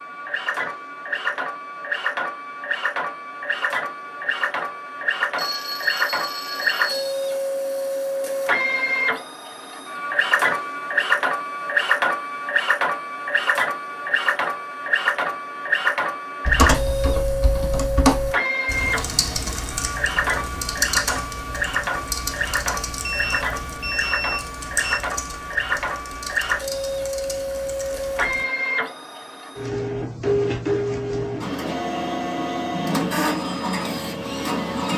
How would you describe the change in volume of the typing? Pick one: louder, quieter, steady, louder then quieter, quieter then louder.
quieter.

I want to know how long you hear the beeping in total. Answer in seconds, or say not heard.
4 s.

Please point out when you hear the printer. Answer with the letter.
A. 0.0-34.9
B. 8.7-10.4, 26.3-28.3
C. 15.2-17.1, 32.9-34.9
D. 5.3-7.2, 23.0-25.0
A.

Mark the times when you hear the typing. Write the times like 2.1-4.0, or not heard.
16.4-28.4.